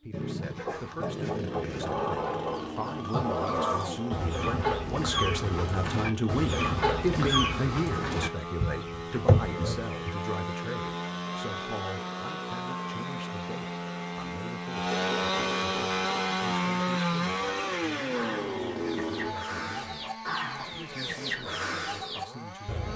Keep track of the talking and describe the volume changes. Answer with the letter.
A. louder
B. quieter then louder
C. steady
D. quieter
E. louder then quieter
E.